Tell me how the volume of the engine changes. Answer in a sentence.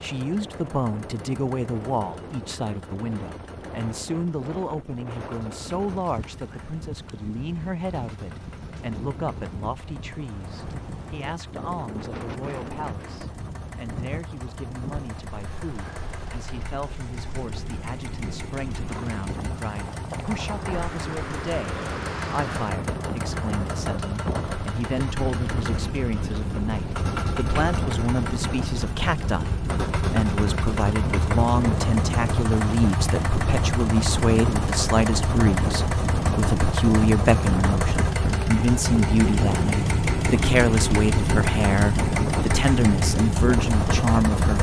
The volume of the engine goes up.